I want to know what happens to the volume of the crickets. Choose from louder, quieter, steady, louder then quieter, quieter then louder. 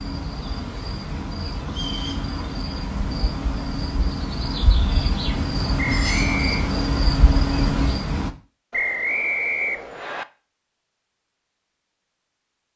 louder.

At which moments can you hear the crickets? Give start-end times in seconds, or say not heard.
0.0-8.3.